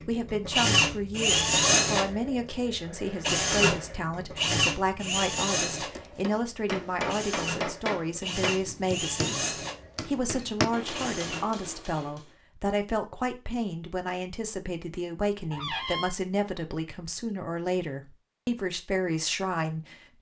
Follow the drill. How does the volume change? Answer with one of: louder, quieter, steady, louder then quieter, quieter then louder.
quieter.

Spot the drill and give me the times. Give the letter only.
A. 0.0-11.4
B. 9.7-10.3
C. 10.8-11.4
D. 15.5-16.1
A.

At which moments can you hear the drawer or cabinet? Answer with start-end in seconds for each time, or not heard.
15.5-16.1.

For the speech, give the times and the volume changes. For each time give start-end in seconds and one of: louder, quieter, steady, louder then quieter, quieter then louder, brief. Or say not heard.
0.0-19.9 steady.